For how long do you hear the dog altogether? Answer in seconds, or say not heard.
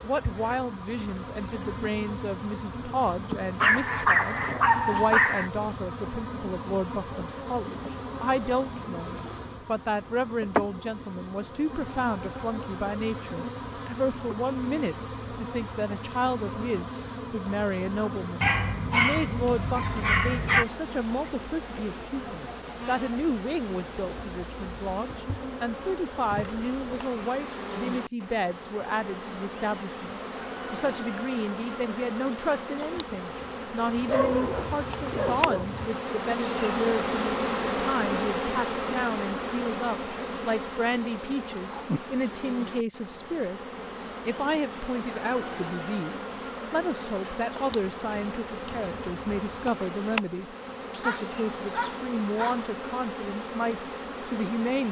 8 s.